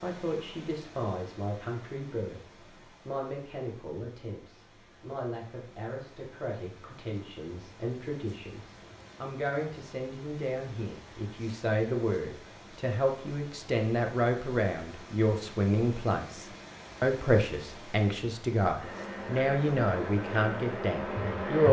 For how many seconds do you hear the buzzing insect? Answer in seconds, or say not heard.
3 s.